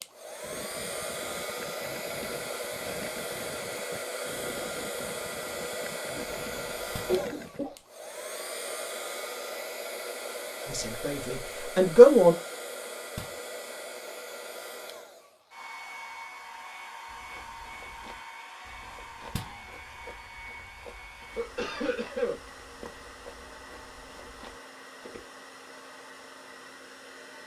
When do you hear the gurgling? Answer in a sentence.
You can hear the gurgling from 0.4 to 7.7 s.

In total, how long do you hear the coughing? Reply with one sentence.
The coughing can be heard for 2 seconds in total.